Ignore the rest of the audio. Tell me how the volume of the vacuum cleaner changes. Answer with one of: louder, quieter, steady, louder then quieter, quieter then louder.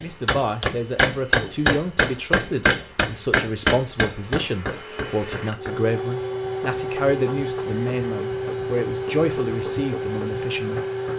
louder.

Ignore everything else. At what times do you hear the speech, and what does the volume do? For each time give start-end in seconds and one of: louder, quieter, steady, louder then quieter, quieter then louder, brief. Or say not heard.
0.0-10.8 steady.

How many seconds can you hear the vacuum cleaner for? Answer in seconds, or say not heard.
11 s.